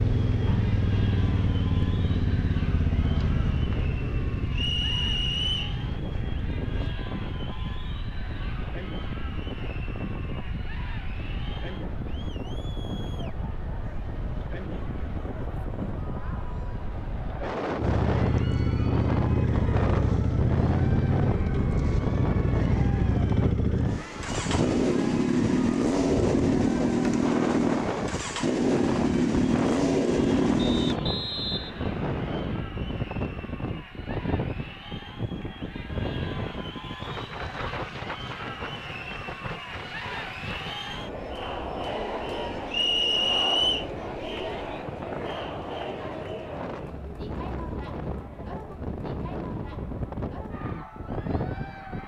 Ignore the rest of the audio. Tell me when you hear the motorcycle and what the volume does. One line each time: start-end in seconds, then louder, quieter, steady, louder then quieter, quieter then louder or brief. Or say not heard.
0.0-7.0 quieter
17.8-31.0 steady.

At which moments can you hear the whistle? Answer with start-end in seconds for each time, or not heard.
4.5-5.8, 30.6-32.4, 42.7-43.9.